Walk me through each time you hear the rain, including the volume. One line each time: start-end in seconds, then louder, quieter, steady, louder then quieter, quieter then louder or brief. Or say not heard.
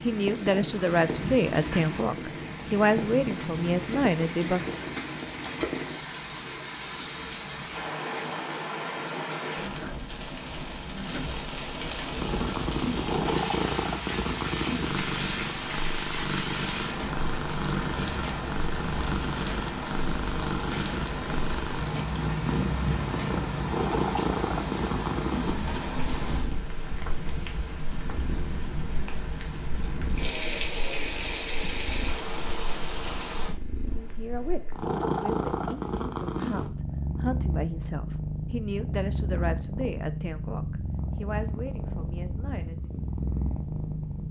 0.0-33.5 steady.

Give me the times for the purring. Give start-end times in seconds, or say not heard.
12.1-44.2.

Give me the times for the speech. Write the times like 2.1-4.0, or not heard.
0.0-4.8, 33.9-42.9.